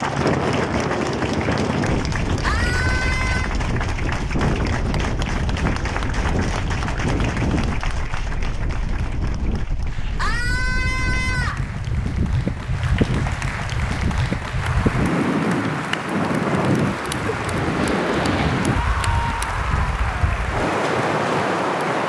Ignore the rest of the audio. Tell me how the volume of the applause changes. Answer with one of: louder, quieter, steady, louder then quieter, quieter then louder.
quieter then louder.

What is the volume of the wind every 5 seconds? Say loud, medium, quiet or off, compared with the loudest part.
loud, medium, loud, loud, loud.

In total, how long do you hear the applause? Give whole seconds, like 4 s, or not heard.
22 s.